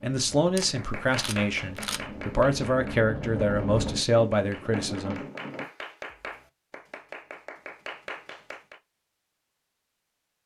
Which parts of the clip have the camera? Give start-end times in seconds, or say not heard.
0.6-2.0.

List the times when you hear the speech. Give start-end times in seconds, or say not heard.
0.0-5.2.